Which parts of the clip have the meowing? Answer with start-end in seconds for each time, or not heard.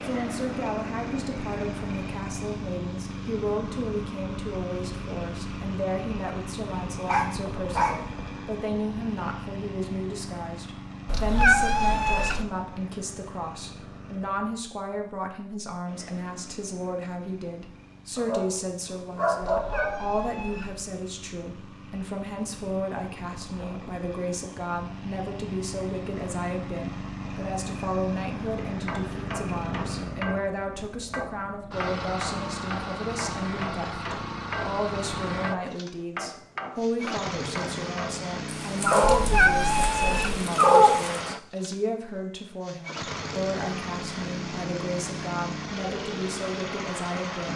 11.1-12.4, 19.4-20.8, 39.0-40.4.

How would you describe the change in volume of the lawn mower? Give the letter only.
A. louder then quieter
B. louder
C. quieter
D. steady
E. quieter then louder
E.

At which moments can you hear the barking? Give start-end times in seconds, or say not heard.
7.0-8.1, 18.1-20.0, 38.6-41.2.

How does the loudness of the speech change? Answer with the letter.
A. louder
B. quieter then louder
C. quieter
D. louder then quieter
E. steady
E.